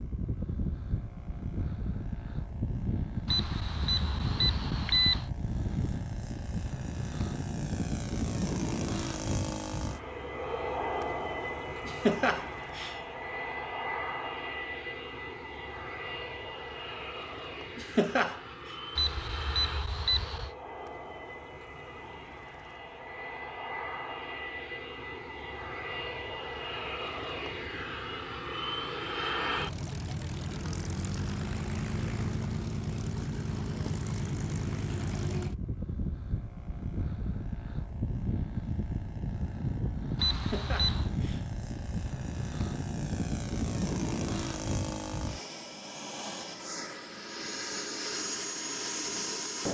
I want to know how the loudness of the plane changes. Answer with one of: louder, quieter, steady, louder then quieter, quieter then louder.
steady.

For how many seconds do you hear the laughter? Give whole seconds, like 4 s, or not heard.
3 s.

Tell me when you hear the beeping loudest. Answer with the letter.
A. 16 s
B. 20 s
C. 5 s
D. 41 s
C.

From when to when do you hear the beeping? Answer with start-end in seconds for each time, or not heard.
3.2-5.2, 18.9-20.5, 40.1-41.1.